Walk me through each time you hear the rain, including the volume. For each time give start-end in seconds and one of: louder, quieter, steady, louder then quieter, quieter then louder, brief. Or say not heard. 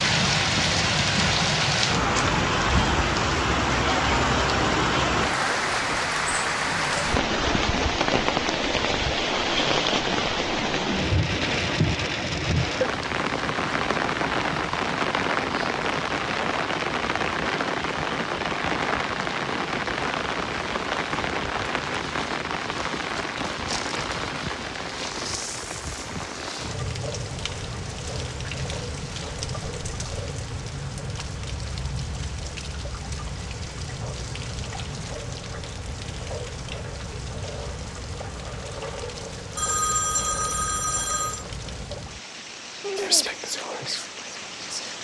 0.0-44.9 quieter.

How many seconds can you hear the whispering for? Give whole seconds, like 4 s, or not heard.
2 s.